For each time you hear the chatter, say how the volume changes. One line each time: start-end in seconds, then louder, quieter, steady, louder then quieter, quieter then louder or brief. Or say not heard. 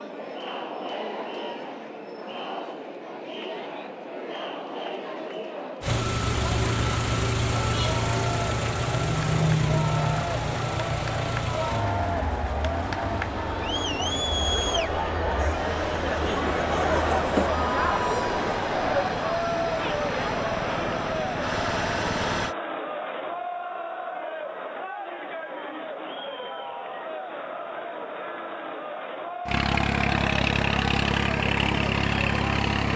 0.0-32.9 louder then quieter.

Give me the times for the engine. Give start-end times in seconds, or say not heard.
5.8-22.6, 29.4-32.9.